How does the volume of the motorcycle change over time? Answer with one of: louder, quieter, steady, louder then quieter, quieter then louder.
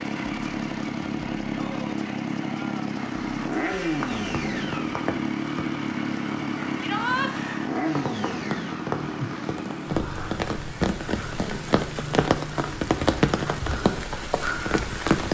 quieter.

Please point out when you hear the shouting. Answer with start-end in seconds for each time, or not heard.
6.8-7.3.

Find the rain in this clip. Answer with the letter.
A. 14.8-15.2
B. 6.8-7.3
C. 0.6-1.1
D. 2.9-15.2
D.